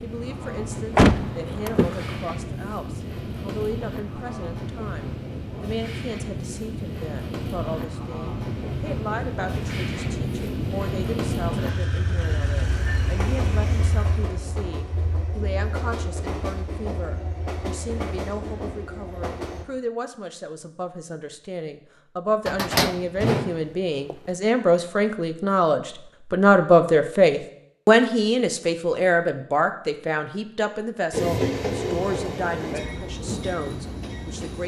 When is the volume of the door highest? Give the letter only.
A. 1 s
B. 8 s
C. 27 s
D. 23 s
A.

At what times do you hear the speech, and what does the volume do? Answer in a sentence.
You can hear the speech from 0.0 to 34.6 s, getting louder.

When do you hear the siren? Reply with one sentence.
The siren can't be heard in this clip.